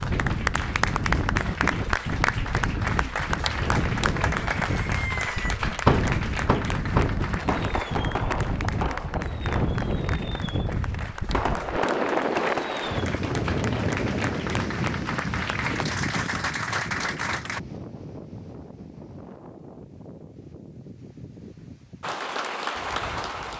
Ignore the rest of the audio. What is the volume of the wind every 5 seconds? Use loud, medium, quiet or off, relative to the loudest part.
loud, loud, loud, medium, quiet.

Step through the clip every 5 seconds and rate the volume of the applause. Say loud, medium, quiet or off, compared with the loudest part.
loud, medium, medium, loud, loud.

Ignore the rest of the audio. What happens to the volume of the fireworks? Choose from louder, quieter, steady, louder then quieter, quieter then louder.
quieter then louder.